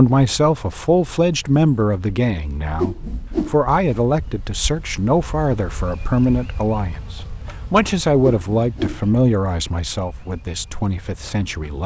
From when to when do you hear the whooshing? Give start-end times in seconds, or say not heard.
2.8-3.5, 8.2-9.0.